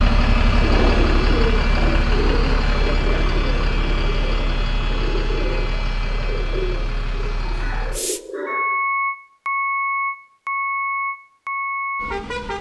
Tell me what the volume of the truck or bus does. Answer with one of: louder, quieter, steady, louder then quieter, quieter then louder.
quieter then louder.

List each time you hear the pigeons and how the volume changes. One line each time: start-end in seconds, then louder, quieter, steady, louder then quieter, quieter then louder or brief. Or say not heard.
0.6-8.8 quieter.